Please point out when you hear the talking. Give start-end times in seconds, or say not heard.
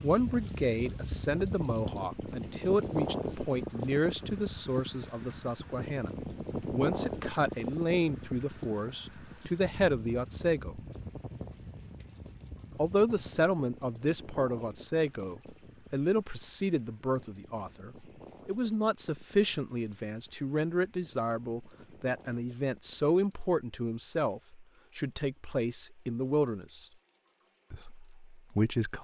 0.0-6.1, 6.7-10.8, 12.8-26.9, 27.7-29.0.